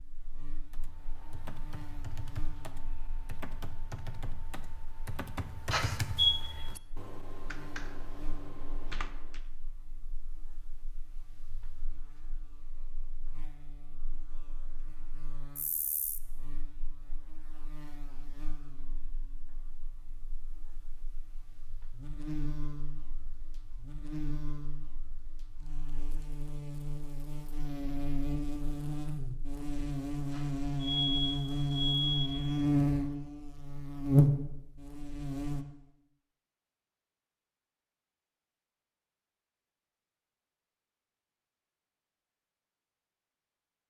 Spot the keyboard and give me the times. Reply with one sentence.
The keyboard can be heard from 0.7 to 9.4 s.